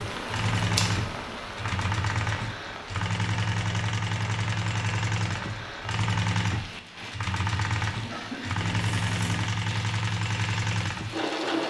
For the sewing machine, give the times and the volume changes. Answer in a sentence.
You can hear the sewing machine from 0.0 to 11.6 s, at a steady volume.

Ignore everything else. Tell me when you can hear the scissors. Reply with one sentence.
The scissors can be heard from 0.6 to 1.2 s and from 8.6 to 9.4 s.